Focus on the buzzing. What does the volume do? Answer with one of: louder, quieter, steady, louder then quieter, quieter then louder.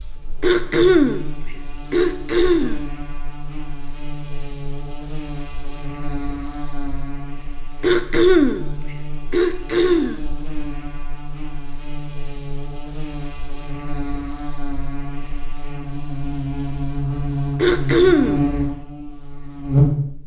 louder.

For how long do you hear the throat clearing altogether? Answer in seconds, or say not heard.
4 s.